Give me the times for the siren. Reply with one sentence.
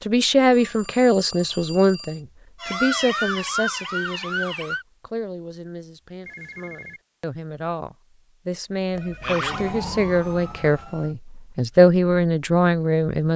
You can hear the siren from 2.6 to 4.8 s and from 9.2 to 11.2 s.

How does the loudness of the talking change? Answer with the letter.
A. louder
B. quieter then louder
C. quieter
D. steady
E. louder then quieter
B.